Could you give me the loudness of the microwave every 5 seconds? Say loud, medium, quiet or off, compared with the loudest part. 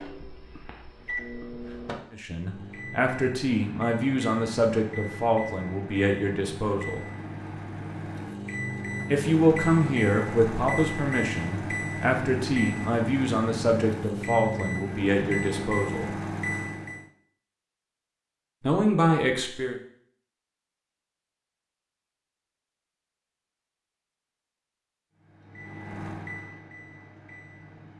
medium, loud, loud, loud, off, medium.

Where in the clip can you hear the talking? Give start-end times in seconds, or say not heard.
2.1-7.0, 9.1-16.1, 18.6-19.8.